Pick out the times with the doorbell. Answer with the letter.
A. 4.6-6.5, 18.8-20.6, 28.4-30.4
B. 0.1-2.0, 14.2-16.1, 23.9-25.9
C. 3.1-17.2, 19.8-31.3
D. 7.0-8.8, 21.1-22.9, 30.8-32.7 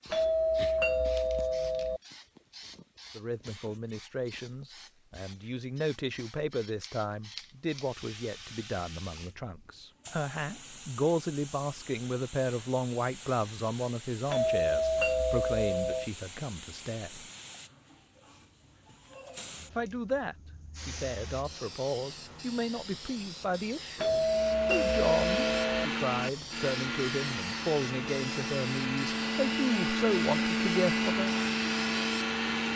B.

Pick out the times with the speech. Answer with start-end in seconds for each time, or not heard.
3.1-17.2, 19.8-31.3.